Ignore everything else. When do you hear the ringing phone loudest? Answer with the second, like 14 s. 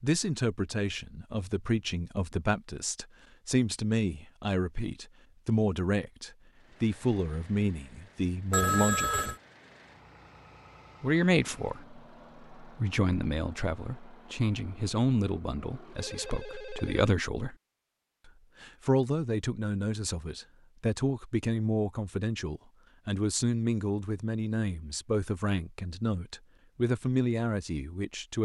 9 s.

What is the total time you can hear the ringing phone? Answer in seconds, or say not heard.
2 s.